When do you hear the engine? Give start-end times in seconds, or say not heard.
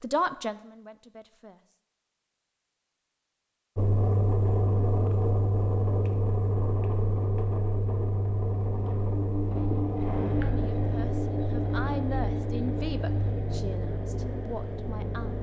3.8-15.3.